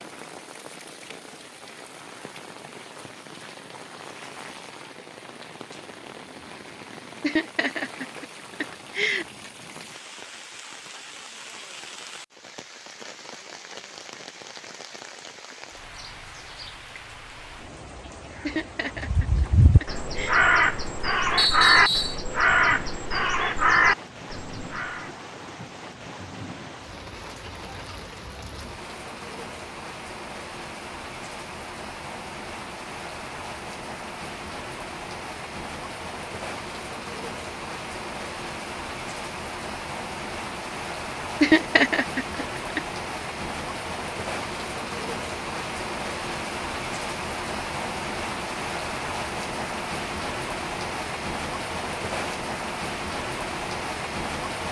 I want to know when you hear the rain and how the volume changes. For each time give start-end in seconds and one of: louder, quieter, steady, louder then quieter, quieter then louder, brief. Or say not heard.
0.0-54.6 louder.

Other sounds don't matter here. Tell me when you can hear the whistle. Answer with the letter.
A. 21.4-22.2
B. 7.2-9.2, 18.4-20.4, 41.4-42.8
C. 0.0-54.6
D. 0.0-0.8
A.